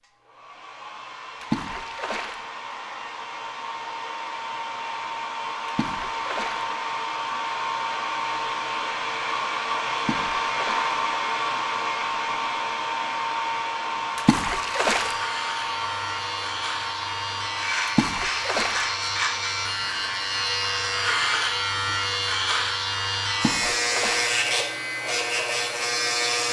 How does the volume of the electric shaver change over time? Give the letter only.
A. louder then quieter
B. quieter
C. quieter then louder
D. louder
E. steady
D.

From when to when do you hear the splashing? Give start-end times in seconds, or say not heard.
1.4-2.4, 5.7-6.7, 9.9-10.9, 14.2-15.2, 17.9-18.9, 23.3-24.3.